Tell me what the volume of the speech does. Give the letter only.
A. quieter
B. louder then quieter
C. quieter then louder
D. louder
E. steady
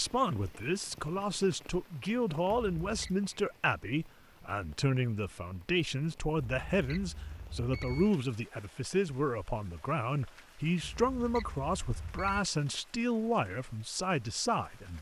E.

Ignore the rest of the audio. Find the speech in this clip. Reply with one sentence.
You can hear the speech from 0.0 to 14.9 s.